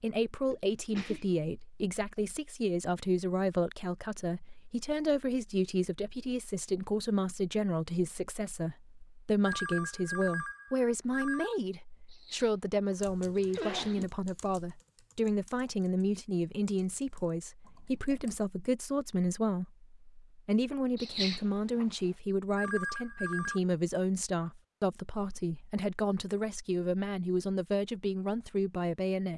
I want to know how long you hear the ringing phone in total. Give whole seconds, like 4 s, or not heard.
3 s.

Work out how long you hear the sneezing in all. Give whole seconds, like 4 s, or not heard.
4 s.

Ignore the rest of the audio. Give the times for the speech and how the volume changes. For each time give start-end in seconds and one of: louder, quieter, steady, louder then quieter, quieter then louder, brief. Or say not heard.
0.0-29.3 steady.